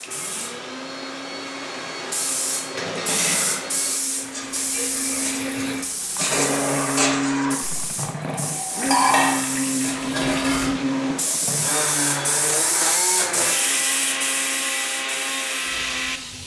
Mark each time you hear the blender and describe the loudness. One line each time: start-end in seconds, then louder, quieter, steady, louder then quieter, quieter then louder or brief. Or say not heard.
0.0-16.4 louder.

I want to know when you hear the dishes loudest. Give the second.
9 s.